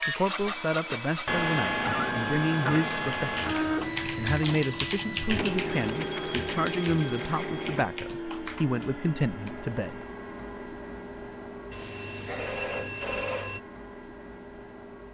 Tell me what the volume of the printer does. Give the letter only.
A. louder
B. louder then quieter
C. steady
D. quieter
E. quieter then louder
D.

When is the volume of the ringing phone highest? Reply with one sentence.
The loudest moment of the ringing phone is at 13 seconds.